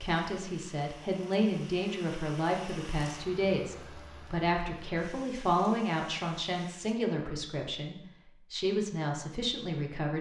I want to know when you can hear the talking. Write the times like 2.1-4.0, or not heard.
0.0-10.1.